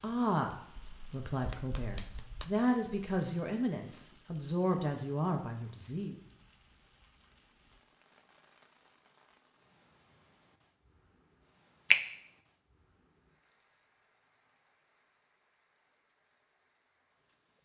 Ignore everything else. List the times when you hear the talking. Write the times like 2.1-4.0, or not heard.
0.0-6.2.